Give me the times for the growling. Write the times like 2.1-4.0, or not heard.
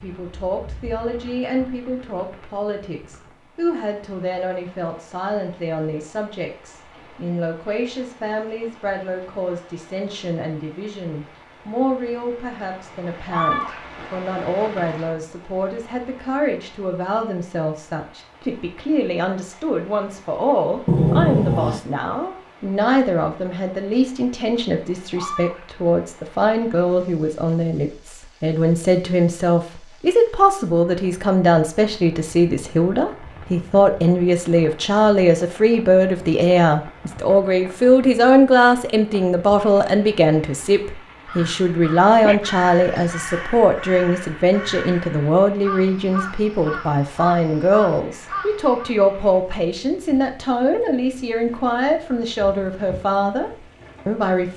20.9-21.8.